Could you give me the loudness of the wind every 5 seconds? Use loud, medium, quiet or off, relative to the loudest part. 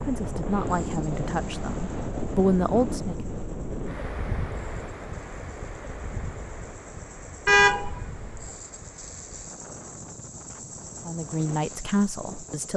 loud, medium, quiet.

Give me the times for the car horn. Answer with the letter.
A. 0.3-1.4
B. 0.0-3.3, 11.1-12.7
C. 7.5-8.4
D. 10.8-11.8
C.